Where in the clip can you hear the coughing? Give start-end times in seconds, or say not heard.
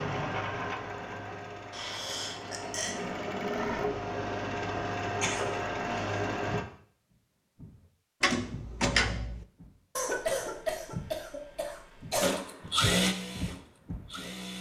1.7-3.0, 5.2-6.1, 9.9-12.3.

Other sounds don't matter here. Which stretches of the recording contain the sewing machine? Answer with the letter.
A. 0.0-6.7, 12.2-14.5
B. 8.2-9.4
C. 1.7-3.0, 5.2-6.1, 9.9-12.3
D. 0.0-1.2
A.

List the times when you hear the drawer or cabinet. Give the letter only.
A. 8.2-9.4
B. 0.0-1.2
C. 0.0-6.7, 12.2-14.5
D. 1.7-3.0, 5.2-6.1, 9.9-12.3
A.